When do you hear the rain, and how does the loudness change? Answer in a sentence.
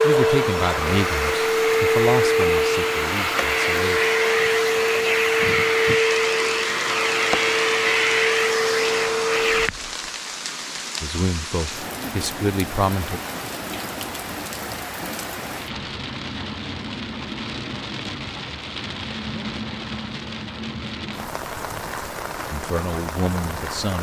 The rain can be heard from 0.0 to 23.9 s, at a steady volume.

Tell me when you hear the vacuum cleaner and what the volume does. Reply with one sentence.
You can hear the vacuum cleaner from 0.0 to 9.7 s, at a steady volume.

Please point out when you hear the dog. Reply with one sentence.
You can't hear the dog here.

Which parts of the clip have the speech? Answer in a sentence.
The speech can be heard from 0.0 to 4.1 s, from 11.0 to 13.2 s and from 22.5 to 23.9 s.